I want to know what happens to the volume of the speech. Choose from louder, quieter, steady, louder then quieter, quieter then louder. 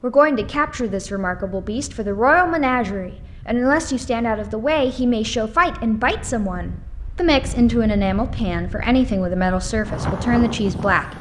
steady.